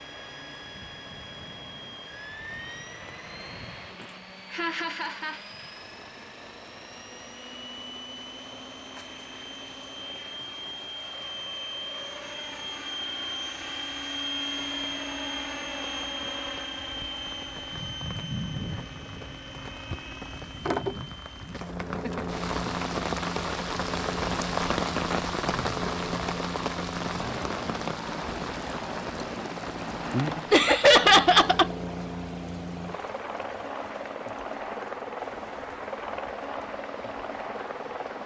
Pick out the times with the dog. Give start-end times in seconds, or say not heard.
not heard.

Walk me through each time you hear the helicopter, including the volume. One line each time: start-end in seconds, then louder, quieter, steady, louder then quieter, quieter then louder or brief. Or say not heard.
0.0-38.2 louder.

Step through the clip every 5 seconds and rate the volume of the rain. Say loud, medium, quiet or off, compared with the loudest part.
quiet, quiet, quiet, quiet, loud, loud, medium, quiet.